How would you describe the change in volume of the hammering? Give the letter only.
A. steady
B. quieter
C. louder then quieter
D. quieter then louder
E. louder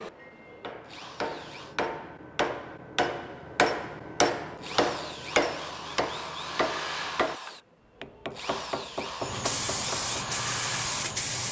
C.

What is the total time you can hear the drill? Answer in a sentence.
You can hear the drill for 9 seconds altogether.